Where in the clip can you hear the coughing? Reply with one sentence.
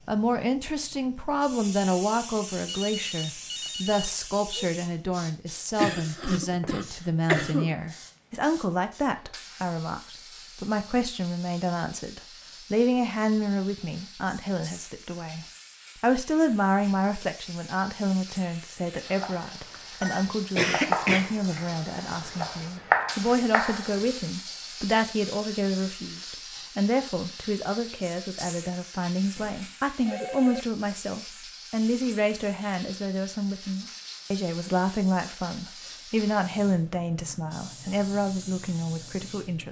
The coughing can be heard from 5.8 to 7.8 s and from 20.6 to 21.4 s.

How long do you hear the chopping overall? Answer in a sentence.
The chopping can be heard for 5 seconds in total.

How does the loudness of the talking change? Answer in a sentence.
The volume of the talking stays about the same.